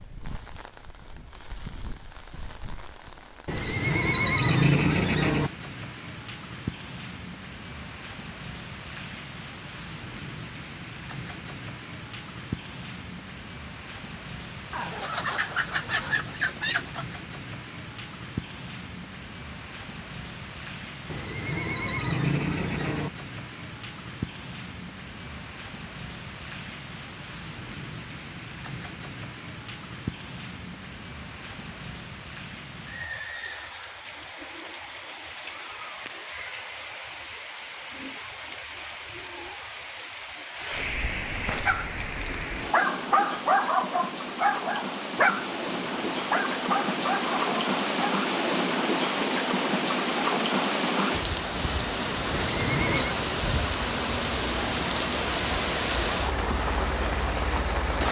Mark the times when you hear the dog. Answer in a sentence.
You can hear the dog from 41.6 to 48.1 s.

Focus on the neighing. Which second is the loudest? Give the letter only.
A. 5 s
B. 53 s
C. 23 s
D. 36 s
A.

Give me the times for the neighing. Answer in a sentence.
You can hear the neighing from 3.5 to 5.5 s, from 21.1 to 23.1 s and from 52.3 to 53.2 s.